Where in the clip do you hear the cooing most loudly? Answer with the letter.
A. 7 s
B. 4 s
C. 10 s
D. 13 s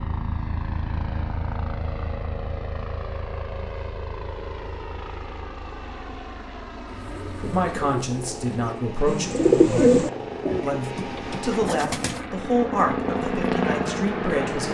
C.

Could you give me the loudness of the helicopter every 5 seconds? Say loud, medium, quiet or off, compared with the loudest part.
medium, medium, loud.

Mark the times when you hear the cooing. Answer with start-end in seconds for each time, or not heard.
6.8-12.3.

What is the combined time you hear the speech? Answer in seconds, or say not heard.
6 s.